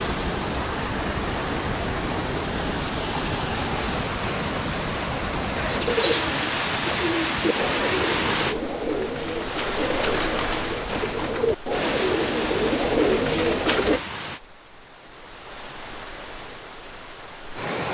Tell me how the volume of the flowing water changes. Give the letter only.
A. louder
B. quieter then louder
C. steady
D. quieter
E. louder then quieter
D.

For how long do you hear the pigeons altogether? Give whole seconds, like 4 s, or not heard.
9 s.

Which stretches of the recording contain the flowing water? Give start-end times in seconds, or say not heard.
0.0-17.8.